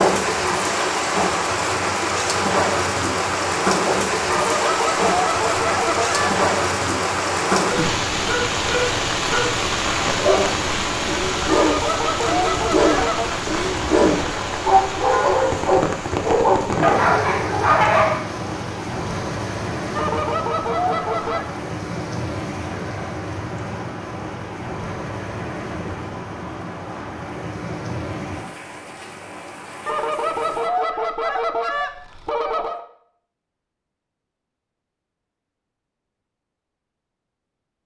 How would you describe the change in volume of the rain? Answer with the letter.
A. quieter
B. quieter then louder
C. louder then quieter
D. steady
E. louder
A.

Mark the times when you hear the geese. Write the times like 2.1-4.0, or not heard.
4.2-6.3, 11.5-13.3, 19.9-21.4, 29.9-32.9.